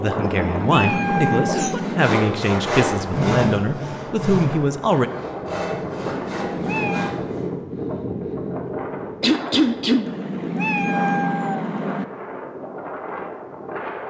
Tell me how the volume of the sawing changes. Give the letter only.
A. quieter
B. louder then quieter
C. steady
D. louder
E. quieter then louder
A.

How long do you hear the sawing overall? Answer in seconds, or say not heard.
6 s.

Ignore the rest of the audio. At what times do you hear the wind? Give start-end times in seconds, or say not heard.
0.0-14.0.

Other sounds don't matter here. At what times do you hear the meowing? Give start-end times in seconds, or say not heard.
0.1-2.1, 6.1-7.2, 10.1-12.1.